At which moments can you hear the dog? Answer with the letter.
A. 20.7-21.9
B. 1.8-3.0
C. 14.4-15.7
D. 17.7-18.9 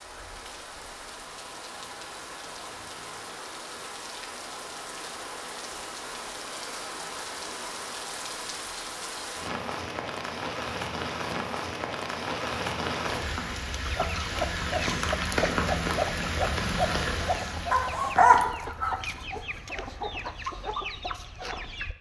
D.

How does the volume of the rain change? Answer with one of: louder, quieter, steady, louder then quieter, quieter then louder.
louder.